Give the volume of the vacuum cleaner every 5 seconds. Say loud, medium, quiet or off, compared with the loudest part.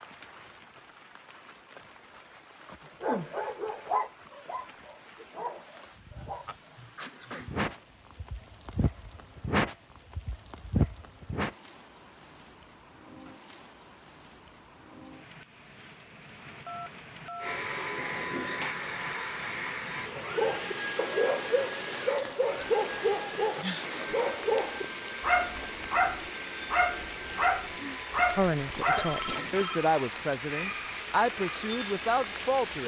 off, off, off, loud, loud, medium, medium.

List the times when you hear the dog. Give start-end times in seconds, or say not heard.
3.0-11.5, 20.1-29.4.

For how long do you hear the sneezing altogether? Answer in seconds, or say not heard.
2 s.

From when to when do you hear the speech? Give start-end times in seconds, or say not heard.
28.3-32.8.